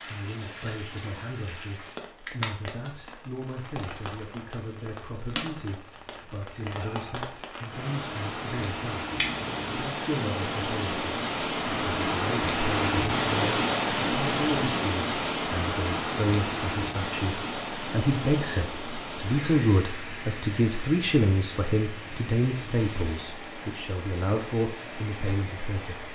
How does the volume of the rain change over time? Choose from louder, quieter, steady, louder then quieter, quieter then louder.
louder then quieter.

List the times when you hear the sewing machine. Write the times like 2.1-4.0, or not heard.
not heard.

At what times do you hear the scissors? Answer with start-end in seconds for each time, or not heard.
9.2-9.8.